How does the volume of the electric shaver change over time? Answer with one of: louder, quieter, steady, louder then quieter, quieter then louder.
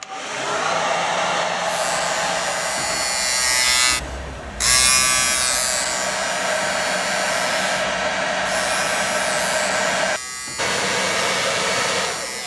quieter.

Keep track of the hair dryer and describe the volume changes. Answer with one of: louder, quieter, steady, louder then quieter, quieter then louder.
quieter then louder.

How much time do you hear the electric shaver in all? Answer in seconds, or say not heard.
11 s.